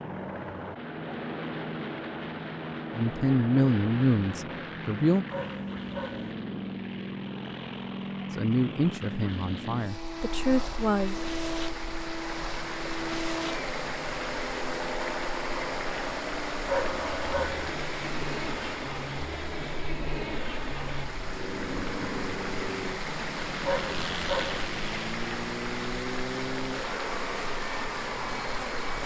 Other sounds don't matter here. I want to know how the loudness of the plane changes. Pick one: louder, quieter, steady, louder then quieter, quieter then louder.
steady.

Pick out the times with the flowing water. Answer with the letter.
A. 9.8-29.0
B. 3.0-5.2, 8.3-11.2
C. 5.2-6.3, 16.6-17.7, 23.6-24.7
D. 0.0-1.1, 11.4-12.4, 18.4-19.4
A.